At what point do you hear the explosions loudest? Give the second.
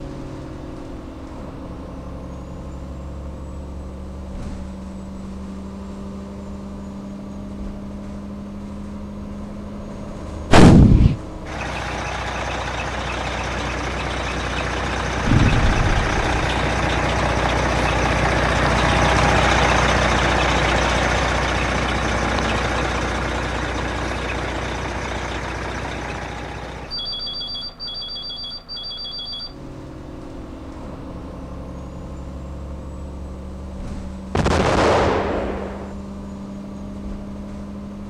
11 s.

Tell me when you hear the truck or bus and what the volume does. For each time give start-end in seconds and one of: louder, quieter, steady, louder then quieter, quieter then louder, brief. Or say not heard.
0.0-38.0 louder then quieter.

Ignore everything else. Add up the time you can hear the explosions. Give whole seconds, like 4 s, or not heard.
3 s.